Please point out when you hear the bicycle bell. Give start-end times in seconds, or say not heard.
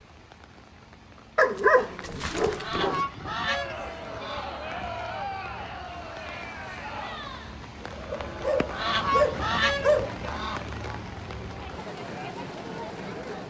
not heard.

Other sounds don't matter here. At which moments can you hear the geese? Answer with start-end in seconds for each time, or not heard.
2.5-5.0, 8.7-10.7.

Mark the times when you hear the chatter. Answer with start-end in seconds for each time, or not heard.
3.4-13.4.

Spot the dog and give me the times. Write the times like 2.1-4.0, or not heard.
1.4-3.0, 8.1-10.1.